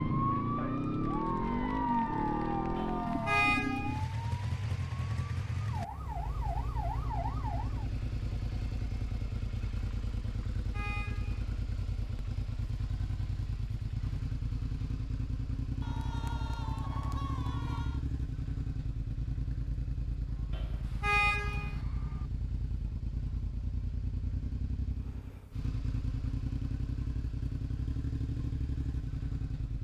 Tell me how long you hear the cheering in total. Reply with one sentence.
You can hear the cheering for 7 seconds altogether.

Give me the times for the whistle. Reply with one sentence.
You can't hear the whistle here.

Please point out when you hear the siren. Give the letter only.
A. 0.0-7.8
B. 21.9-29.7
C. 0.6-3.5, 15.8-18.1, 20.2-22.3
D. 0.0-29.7
A.